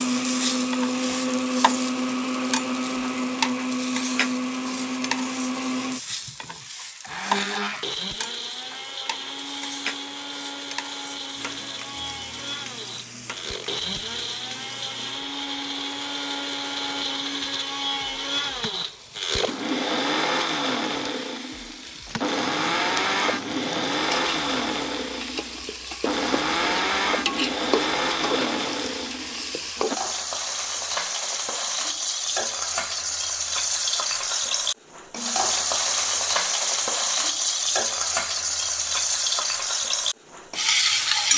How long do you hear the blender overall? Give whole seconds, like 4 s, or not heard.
30 s.